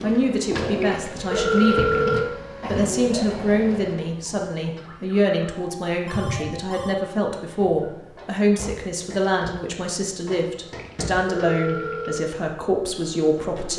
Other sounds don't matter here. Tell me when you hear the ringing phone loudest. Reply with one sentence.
The loudest moment of the ringing phone is at 2 seconds.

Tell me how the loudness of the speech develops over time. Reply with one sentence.
The volume of the speech stays about the same.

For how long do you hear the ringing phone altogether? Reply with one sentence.
The ringing phone can be heard for 4 seconds in total.